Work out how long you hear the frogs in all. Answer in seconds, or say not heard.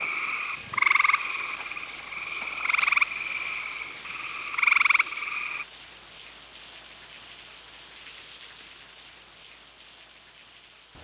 6 s.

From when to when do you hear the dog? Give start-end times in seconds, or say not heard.
not heard.